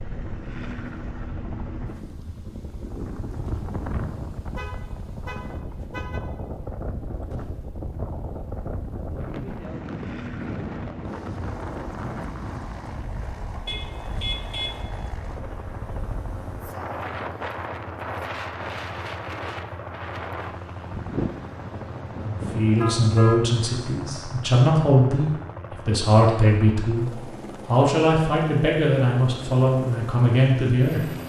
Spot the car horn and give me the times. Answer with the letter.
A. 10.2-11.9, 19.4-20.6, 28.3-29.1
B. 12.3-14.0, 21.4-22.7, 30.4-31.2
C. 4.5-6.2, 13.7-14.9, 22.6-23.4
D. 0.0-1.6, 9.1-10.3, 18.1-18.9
C.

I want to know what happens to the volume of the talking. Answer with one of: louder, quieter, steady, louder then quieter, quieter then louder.
steady.